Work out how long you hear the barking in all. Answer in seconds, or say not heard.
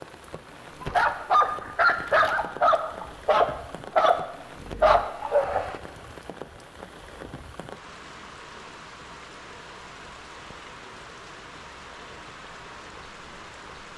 5 s.